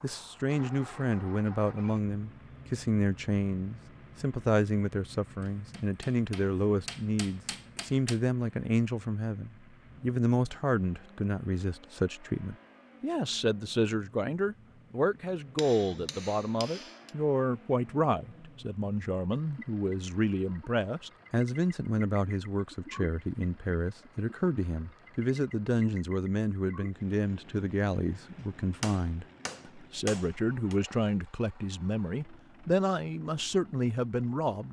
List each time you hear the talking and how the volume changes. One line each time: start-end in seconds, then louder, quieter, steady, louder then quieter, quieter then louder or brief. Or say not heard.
0.0-34.6 steady.